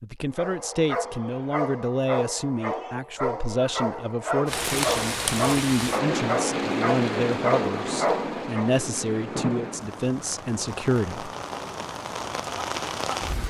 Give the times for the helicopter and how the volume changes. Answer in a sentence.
You can't hear the helicopter here.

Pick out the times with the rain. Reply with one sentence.
You can hear the rain from 4.5 to 13.4 s.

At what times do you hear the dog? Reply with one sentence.
You can hear the dog from 0.3 to 8.8 s.